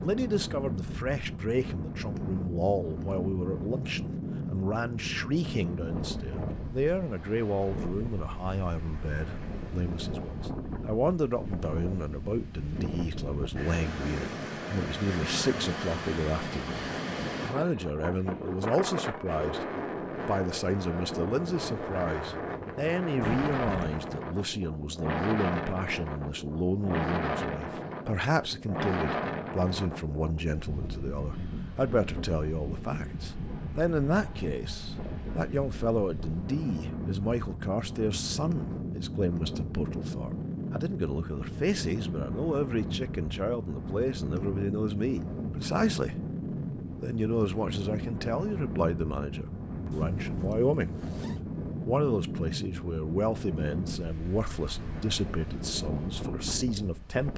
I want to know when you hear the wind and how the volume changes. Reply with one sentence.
The wind can be heard from 0.0 to 57.3 s, at a steady volume.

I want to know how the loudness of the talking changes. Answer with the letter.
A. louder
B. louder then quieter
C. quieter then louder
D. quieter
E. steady
E.